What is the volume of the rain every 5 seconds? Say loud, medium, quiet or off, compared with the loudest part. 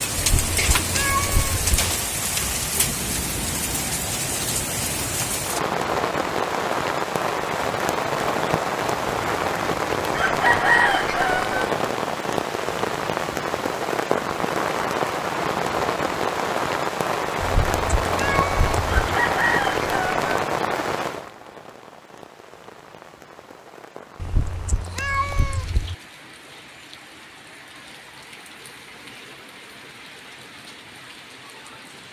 loud, loud, loud, loud, medium, quiet, quiet.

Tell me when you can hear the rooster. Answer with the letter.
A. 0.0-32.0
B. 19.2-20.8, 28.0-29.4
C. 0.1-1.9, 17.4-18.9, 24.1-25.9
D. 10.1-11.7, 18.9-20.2
D.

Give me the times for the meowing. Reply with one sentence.
The meowing can be heard from 0.1 to 1.9 s, from 17.4 to 18.9 s and from 24.1 to 25.9 s.